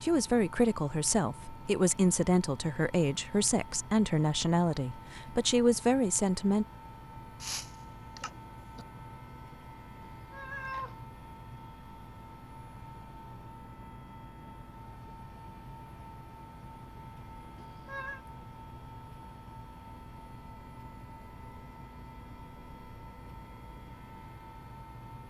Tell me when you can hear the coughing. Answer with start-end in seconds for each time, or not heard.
7.4-8.8.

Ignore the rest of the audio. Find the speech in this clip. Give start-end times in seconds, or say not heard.
0.0-6.7.